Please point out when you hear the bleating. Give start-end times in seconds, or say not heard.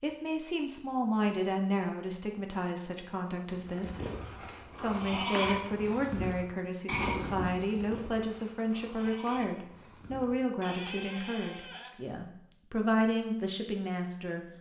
3.5-12.1.